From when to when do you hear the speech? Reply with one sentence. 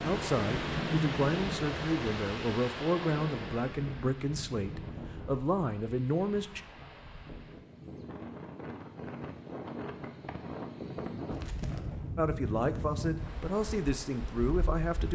You can hear the speech from 0.0 to 6.6 s and from 12.2 to 15.1 s.